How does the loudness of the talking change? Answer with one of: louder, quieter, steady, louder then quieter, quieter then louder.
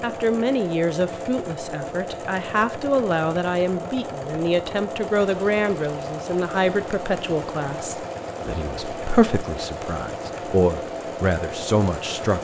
steady.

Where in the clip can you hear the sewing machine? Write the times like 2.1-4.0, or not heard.
0.0-12.3.